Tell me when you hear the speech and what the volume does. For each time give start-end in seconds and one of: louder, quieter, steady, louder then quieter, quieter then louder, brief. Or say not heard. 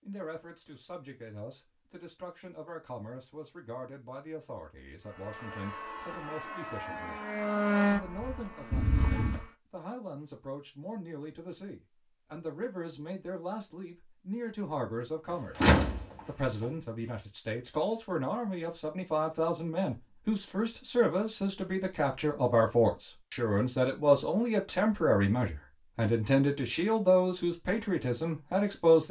0.1-29.0 louder.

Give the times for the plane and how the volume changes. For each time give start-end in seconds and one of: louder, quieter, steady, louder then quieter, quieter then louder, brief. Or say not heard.
5.0-9.5 louder then quieter.